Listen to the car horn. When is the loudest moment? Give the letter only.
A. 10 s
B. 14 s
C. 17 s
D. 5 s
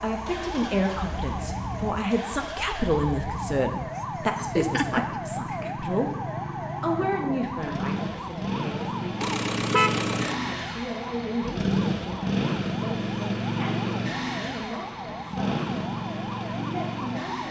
A.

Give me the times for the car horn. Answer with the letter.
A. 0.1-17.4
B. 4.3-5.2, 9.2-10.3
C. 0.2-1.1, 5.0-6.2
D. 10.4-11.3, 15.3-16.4
B.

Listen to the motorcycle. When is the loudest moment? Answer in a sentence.
The loudest moment of the motorcycle is at 12 seconds.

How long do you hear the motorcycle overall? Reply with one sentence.
The motorcycle can be heard for 17 seconds in total.